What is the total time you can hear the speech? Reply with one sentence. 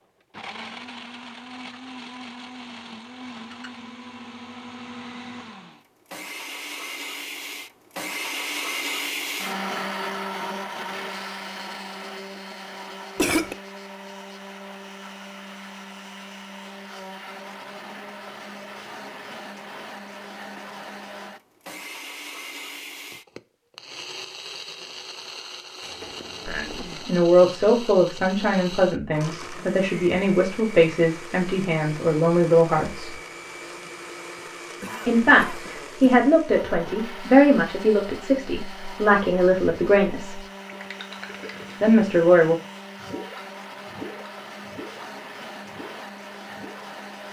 The speech can be heard for 12 seconds in total.